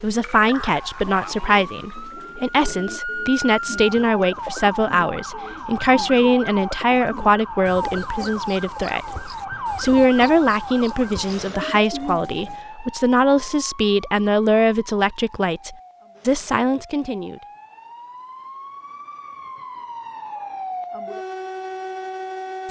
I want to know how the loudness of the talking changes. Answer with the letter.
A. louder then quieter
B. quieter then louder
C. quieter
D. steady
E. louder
D.